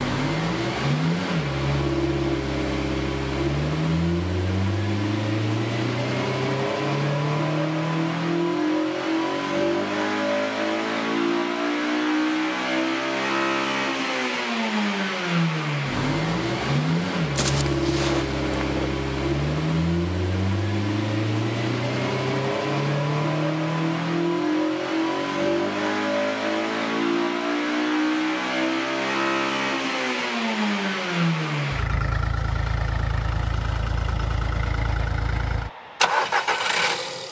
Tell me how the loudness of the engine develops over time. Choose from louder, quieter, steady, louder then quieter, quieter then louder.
steady.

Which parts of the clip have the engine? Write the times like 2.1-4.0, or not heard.
0.0-37.2.